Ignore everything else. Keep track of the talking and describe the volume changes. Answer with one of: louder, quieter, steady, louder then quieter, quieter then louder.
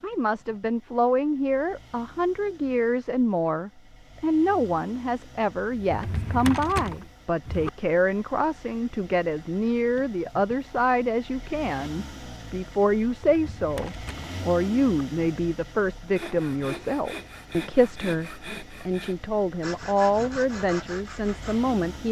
steady.